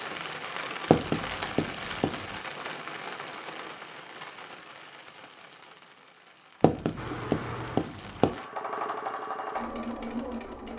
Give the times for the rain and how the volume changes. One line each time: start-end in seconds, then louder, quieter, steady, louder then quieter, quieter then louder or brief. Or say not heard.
0.0-8.5 quieter.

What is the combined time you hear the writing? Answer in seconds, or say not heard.
3 s.